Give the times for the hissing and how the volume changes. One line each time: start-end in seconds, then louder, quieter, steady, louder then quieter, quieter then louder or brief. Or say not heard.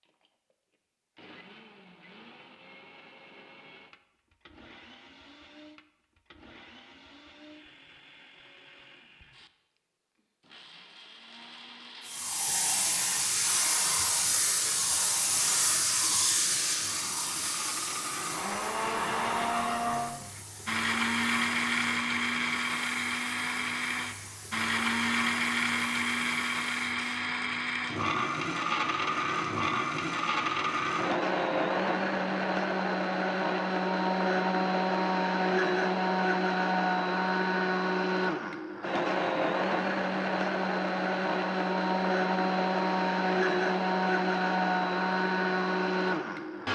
12.1-27.2 quieter.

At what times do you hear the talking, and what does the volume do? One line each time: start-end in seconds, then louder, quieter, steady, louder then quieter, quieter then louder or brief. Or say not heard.
not heard.